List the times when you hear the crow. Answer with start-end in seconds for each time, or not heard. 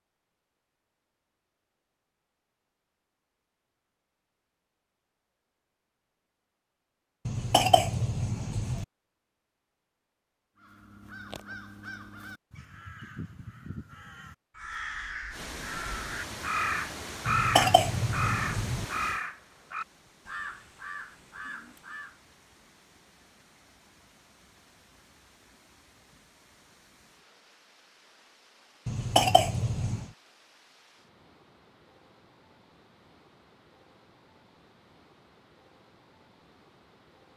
10.6-22.4.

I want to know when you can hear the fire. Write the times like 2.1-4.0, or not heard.
not heard.